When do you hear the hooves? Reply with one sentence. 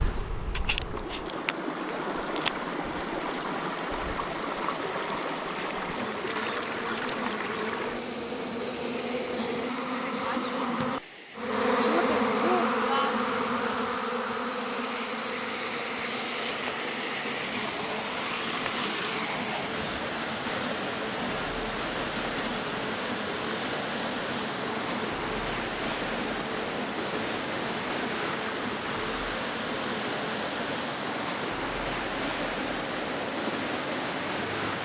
You can't hear the hooves here.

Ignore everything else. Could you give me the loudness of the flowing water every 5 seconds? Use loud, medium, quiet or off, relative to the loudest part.
loud, loud, medium, loud, loud, loud, loud.